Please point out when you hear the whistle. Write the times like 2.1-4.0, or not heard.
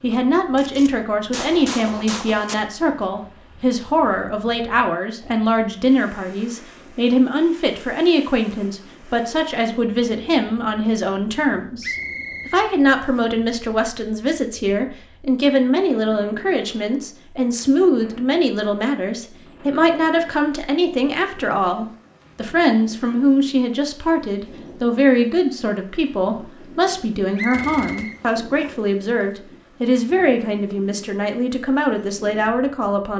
11.8-13.2, 27.4-28.8.